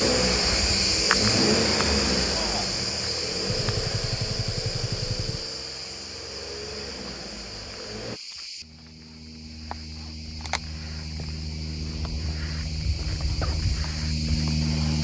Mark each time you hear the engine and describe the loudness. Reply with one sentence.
The engine can be heard from 0.0 to 8.2 s, getting quieter.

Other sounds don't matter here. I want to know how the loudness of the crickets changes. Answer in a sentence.
The volume of the crickets goes down, then up.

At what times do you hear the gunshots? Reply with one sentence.
The gunshots can be heard from 3.5 to 5.5 s.